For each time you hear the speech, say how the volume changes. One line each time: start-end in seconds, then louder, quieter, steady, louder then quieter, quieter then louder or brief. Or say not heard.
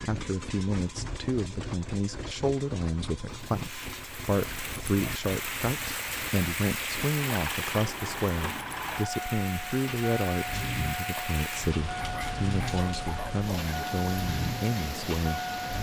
0.0-15.4 steady.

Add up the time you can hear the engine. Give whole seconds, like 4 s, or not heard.
16 s.